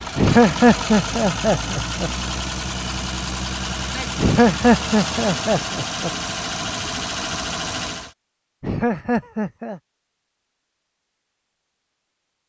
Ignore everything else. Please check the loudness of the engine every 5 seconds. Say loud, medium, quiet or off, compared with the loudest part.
loud, loud, off.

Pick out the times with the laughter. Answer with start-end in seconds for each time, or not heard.
0.1-2.1, 4.2-6.1, 8.6-9.8.